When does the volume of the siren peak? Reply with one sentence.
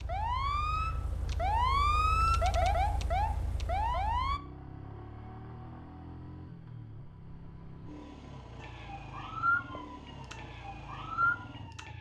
The volume of the siren peaks at 2 seconds.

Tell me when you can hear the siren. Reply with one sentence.
You can hear the siren from 0.0 to 4.4 s and from 8.6 to 11.9 s.